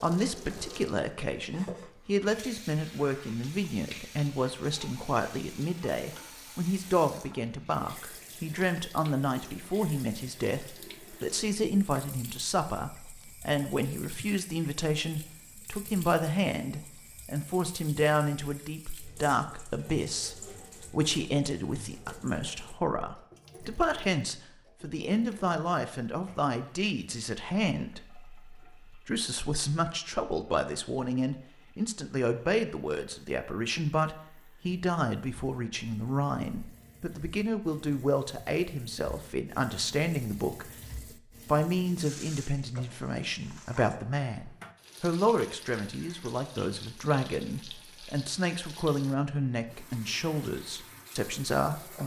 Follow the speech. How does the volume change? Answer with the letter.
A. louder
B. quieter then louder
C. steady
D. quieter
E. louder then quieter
C.